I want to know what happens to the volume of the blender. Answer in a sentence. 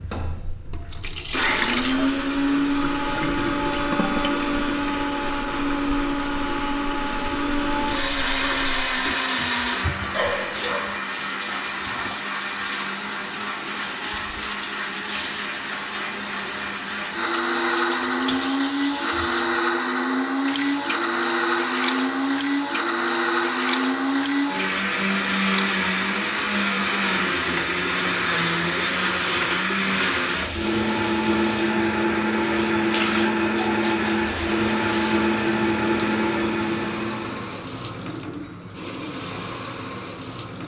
The loudness of the blender stays about the same.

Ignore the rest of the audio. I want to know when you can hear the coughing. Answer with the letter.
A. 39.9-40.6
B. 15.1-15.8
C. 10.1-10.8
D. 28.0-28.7
C.